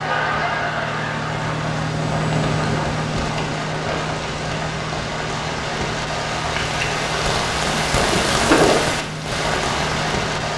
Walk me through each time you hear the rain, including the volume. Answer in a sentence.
You can hear the rain from 0.0 to 10.5 s, getting louder.